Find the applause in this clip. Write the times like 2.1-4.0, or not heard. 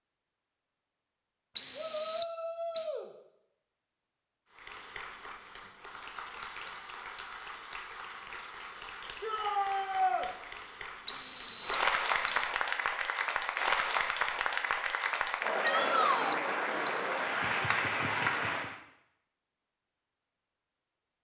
4.5-18.8.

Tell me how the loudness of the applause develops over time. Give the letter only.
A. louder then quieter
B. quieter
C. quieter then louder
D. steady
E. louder
E.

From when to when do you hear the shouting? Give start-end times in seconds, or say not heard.
1.8-3.1, 9.2-10.2, 15.6-16.4.